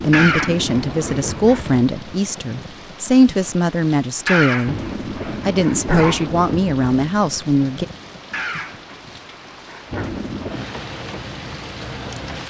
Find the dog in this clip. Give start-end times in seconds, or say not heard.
0.1-1.8, 4.2-6.2, 8.3-10.2.